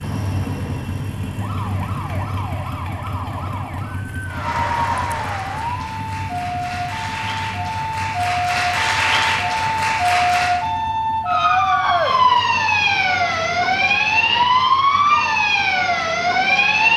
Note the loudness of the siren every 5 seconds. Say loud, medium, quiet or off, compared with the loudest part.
quiet, medium, loud, loud.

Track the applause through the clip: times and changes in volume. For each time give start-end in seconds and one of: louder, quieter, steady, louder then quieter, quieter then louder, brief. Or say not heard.
4.2-10.6 quieter then louder.